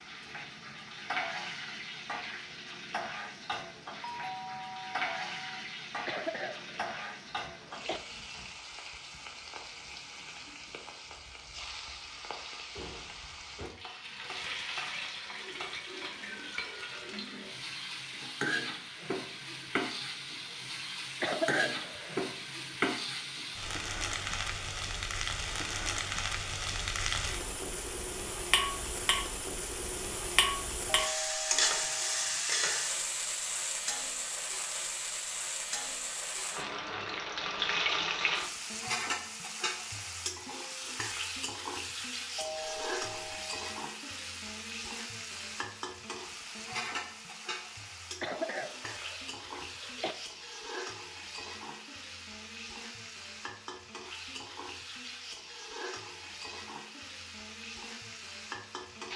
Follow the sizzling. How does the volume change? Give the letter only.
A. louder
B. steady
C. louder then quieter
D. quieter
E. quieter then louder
C.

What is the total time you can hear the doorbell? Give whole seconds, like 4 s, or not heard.
5 s.